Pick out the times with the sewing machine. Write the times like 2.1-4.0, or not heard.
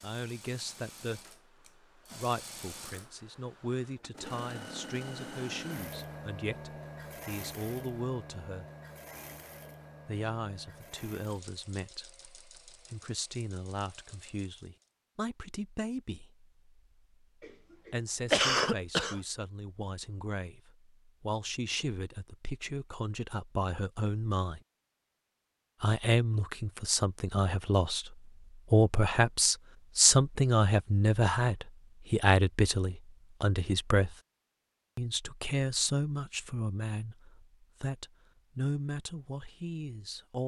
0.0-14.9.